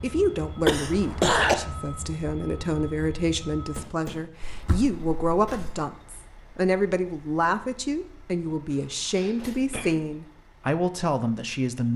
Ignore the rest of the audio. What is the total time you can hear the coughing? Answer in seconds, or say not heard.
4 s.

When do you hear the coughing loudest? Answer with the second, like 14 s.
1 s.